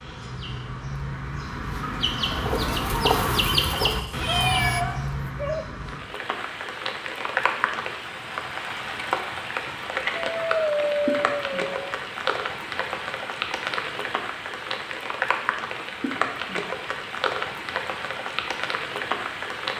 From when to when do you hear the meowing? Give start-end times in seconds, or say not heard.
4.2-4.8.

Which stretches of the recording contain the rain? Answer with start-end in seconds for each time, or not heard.
5.8-19.7.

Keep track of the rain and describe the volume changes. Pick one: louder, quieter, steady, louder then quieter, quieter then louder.
steady.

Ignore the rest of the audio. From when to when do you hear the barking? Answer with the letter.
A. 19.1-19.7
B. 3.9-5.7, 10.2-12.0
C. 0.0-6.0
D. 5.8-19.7
B.